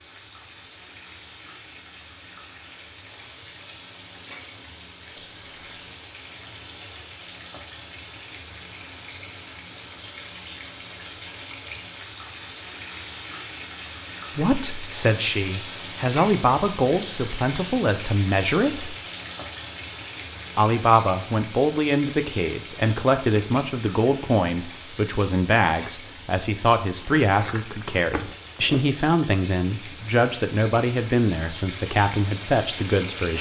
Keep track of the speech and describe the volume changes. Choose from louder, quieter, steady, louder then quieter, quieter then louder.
steady.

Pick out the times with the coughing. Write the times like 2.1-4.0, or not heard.
not heard.